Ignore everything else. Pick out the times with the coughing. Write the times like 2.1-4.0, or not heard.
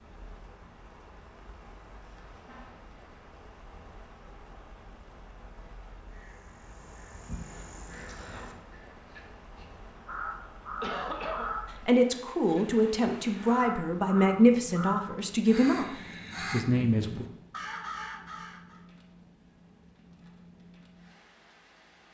10.8-11.5.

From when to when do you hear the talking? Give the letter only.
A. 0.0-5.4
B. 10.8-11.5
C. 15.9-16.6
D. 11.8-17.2
D.